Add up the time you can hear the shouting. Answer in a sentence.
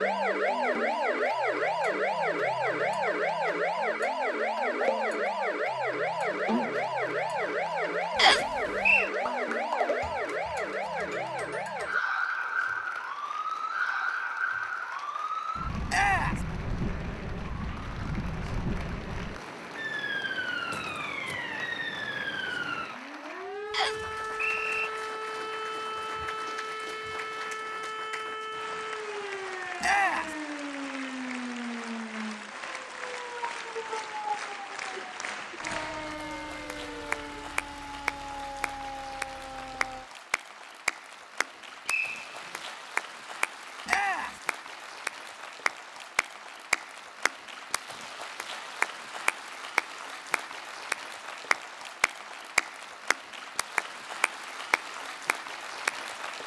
You can hear the shouting for 2 seconds altogether.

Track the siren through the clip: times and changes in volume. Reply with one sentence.
You can hear the siren from 0.0 to 40.1 s, getting quieter.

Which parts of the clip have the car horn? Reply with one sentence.
You can't hear the car horn here.